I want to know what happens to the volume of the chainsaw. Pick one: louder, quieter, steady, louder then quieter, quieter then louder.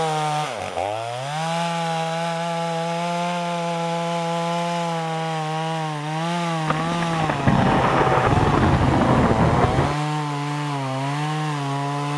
steady.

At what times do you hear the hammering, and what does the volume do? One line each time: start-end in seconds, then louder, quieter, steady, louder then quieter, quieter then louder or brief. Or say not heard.
not heard.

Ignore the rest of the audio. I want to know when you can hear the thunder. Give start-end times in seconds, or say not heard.
6.7-9.9.